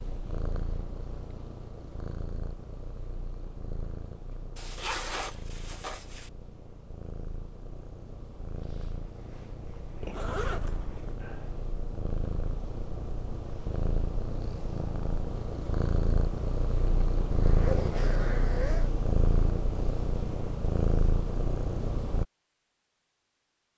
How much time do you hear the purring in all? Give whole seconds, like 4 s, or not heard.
22 s.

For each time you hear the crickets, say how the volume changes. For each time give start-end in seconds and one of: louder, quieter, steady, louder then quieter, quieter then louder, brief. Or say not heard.
not heard.